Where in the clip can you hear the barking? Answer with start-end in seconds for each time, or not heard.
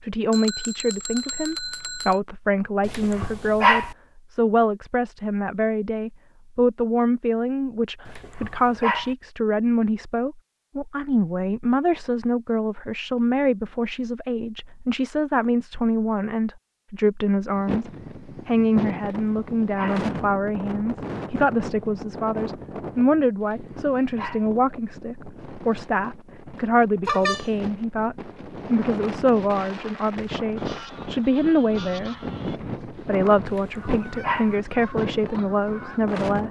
2.9-4.0, 8.1-9.2, 19.0-20.1, 23.4-24.5, 33.5-34.5.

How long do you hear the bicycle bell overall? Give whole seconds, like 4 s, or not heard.
2 s.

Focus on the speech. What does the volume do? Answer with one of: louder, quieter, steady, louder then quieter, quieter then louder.
steady.